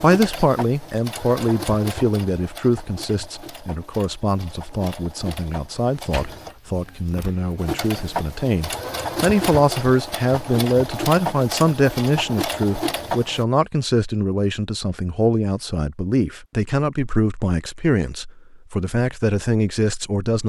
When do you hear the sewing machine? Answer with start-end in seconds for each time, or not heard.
0.0-13.4.